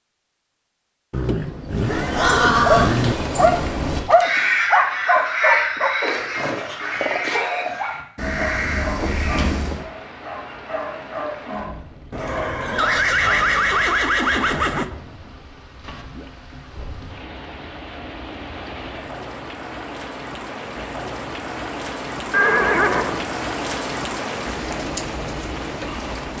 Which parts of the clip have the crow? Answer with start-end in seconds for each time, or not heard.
1.7-9.8.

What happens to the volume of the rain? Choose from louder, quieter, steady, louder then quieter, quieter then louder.
louder.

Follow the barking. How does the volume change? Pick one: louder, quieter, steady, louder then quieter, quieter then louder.
quieter.